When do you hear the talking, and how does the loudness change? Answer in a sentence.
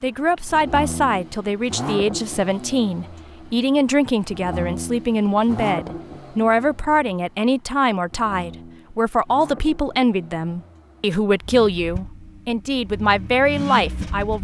The talking can be heard from 0.0 to 14.4 s, at a steady volume.